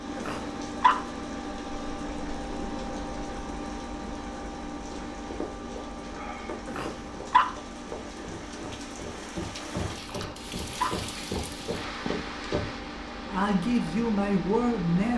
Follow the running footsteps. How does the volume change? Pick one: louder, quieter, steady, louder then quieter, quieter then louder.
louder.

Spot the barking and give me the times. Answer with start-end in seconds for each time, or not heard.
0.1-1.0, 6.7-7.5, 10.1-10.9.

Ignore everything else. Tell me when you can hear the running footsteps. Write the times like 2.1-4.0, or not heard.
5.1-12.7.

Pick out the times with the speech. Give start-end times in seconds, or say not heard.
13.3-15.1.